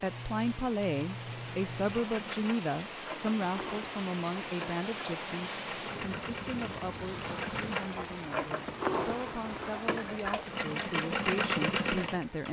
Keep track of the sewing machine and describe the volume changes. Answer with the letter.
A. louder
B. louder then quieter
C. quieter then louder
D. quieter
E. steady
A.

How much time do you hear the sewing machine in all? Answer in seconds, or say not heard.
12 s.